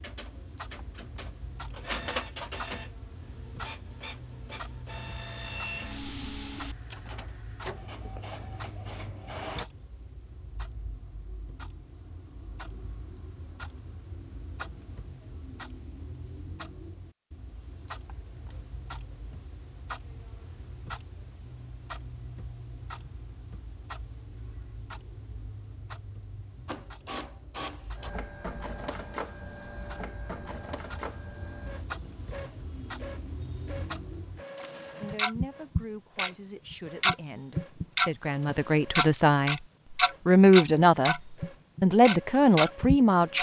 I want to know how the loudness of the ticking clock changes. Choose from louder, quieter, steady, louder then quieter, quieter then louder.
louder.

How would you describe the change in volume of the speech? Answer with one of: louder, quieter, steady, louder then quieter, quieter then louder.
louder.